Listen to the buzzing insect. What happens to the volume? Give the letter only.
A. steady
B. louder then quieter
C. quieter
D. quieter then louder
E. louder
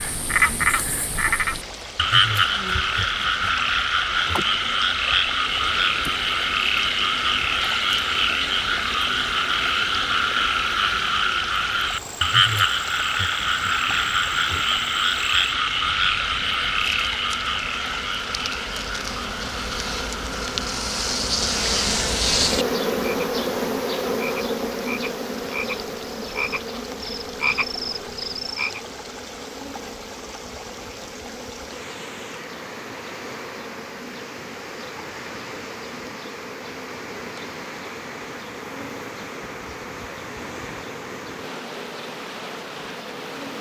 B.